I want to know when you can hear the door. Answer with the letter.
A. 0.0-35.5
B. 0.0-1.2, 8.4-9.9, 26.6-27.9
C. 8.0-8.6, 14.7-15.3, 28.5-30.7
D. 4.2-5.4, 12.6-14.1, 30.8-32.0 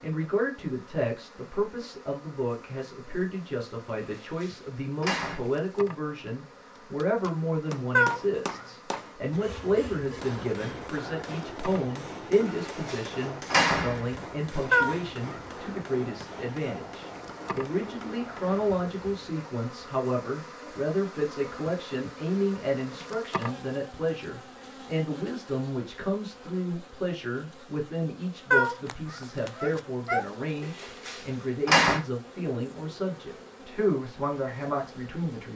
D.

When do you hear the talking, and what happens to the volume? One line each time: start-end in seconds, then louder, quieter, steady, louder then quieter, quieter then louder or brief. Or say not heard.
0.0-35.5 steady.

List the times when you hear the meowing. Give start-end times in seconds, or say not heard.
8.0-8.6, 14.7-15.3, 28.5-30.7.